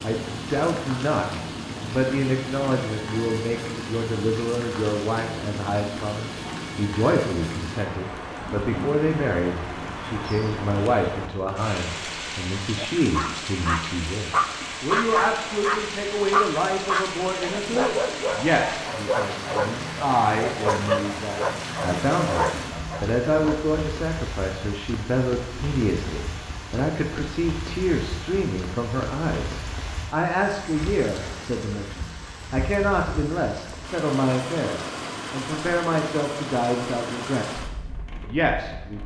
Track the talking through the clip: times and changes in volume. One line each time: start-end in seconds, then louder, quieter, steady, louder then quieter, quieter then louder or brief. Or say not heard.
0.0-37.6 steady
38.2-39.0 brief.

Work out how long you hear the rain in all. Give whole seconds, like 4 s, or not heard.
39 s.